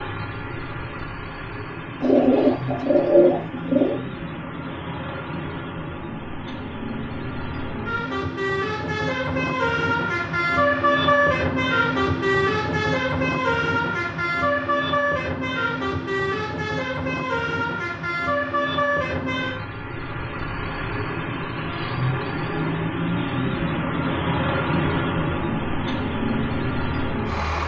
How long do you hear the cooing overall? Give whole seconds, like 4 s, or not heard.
2 s.